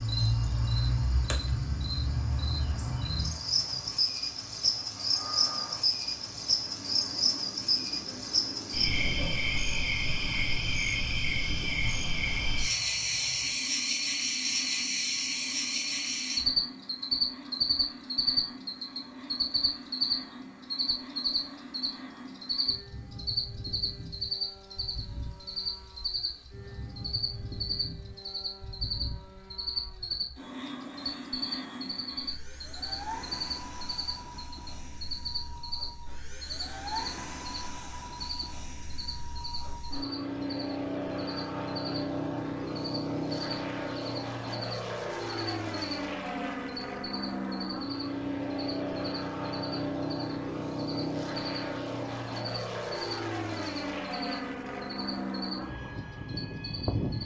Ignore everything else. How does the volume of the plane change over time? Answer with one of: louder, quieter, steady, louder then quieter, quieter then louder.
louder.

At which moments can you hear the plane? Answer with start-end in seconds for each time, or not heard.
0.0-57.2.